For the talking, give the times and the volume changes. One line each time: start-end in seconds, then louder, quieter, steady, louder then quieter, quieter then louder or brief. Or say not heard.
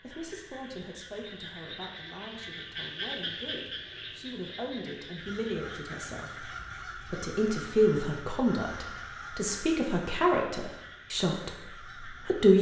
0.0-12.5 louder.